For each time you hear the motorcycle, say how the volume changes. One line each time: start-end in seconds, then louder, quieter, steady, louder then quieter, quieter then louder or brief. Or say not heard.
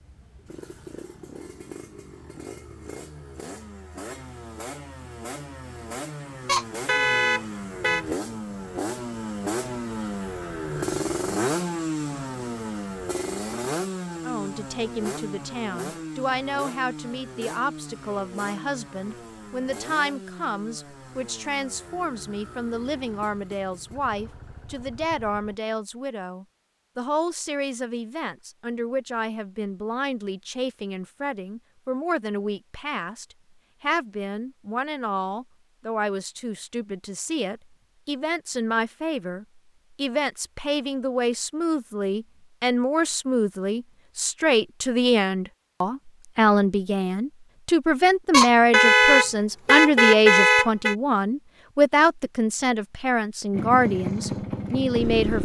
0.0-25.6 louder then quieter
53.5-55.4 brief.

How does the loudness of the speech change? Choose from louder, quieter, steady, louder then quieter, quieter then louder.
louder.